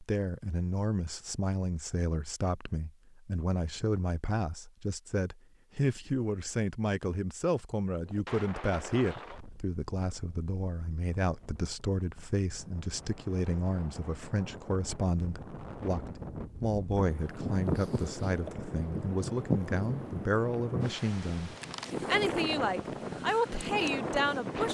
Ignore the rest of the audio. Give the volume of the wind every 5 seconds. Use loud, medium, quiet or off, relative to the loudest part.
off, medium, quiet, loud, loud.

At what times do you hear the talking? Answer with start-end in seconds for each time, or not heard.
0.0-24.6.